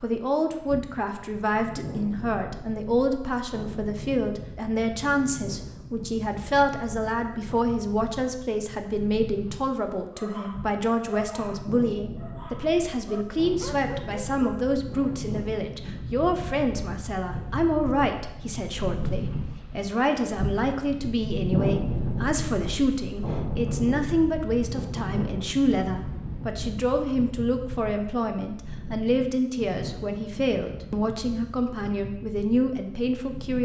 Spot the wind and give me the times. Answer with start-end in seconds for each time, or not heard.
0.2-33.6.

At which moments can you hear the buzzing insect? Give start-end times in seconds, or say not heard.
not heard.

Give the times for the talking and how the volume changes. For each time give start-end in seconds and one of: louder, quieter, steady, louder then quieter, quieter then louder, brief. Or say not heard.
0.0-33.6 steady.